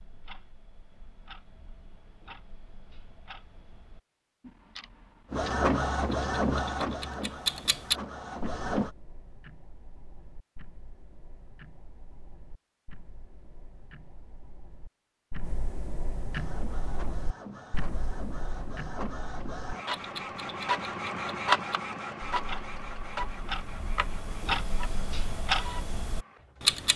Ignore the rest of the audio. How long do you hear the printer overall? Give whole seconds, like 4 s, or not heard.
14 s.